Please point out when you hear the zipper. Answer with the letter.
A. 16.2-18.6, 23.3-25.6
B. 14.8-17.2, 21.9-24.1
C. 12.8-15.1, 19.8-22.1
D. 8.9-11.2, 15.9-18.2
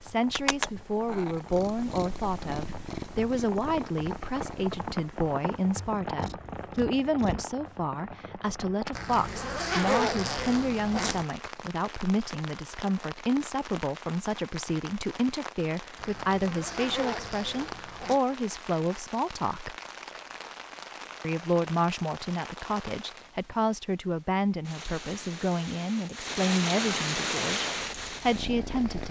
D.